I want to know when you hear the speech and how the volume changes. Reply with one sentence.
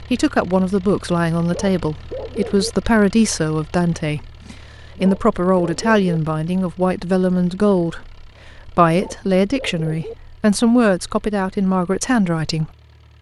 You can hear the speech from 0.0 to 12.7 s, at a steady volume.